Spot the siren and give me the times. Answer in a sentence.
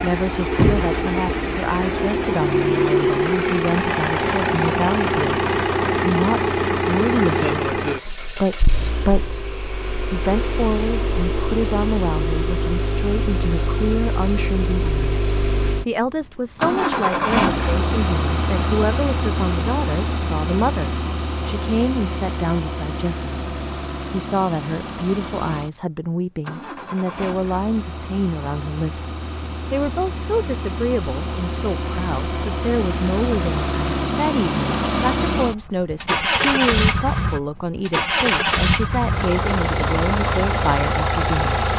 You can't hear the siren here.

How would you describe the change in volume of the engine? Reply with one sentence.
The volume of the engine goes down, then up.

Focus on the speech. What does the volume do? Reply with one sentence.
The loudness of the speech stays about the same.